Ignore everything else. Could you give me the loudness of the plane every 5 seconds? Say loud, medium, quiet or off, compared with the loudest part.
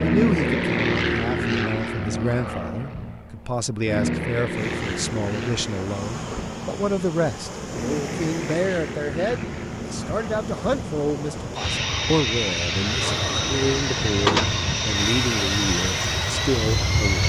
loud, medium, loud, loud.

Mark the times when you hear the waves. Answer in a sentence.
You can hear the waves from 4.5 to 17.2 s.